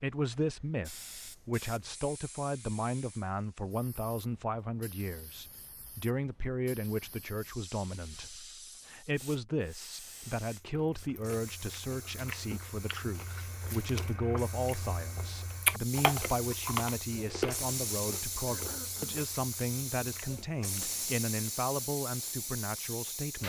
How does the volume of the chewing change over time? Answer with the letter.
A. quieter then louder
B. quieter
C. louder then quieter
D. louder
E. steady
C.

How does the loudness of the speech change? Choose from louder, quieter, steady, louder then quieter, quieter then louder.
steady.